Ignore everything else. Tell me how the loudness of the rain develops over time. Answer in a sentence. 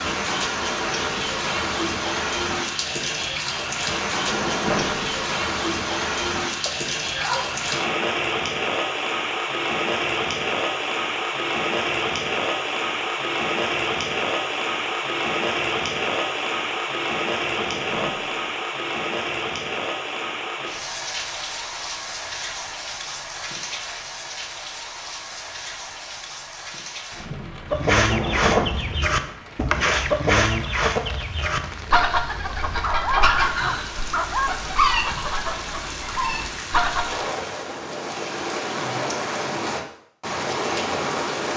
The loudness of the rain goes down, then up.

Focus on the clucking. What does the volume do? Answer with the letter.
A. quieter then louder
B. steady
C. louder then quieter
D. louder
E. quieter
E.